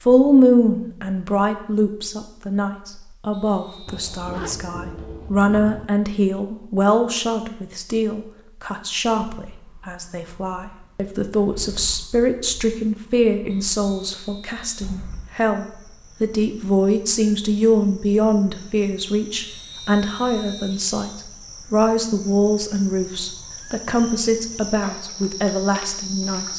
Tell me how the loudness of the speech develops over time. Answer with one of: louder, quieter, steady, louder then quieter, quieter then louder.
steady.